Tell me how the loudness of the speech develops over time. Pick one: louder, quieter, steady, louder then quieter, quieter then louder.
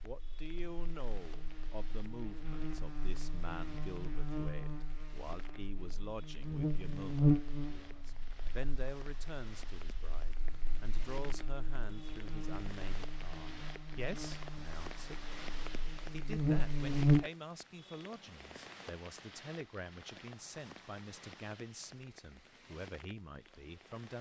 steady.